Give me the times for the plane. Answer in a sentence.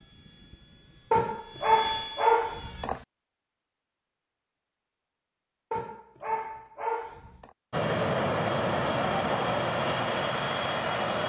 You can hear the plane from 0.0 to 2.9 s and from 7.7 to 11.2 s.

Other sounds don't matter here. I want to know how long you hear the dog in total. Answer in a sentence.
The dog can be heard for 4 seconds in total.